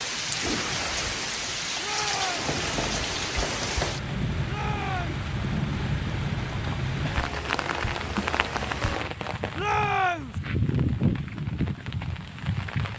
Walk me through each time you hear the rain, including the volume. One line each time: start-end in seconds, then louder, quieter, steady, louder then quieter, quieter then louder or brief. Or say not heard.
0.0-12.9 steady.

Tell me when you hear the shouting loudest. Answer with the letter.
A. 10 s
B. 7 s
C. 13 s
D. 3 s
A.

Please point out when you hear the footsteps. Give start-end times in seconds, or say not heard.
not heard.